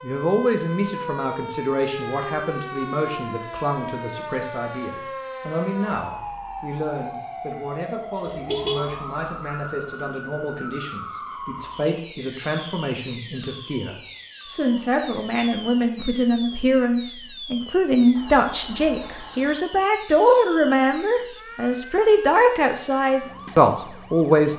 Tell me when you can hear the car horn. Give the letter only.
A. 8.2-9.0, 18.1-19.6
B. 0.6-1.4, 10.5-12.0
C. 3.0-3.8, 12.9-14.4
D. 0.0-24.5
A.